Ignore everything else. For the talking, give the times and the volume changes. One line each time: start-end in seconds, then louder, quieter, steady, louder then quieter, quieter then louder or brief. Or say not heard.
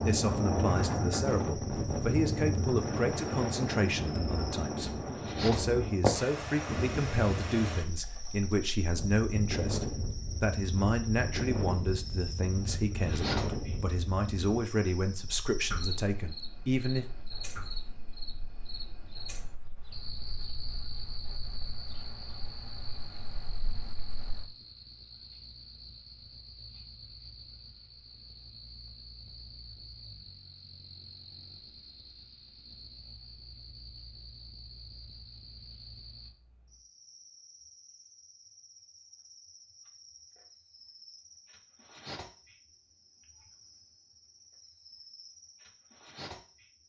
0.0-17.1 steady.